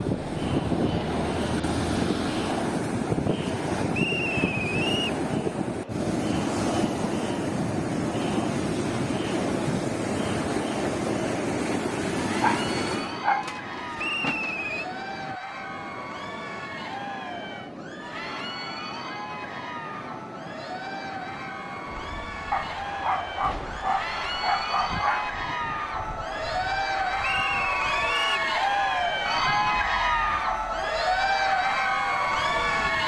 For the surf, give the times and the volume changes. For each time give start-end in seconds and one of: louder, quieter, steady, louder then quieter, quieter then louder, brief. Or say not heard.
0.0-33.0 quieter.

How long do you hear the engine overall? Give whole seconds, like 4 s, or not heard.
3 s.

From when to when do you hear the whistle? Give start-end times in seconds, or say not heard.
3.9-5.2, 13.9-14.8, 27.2-28.5.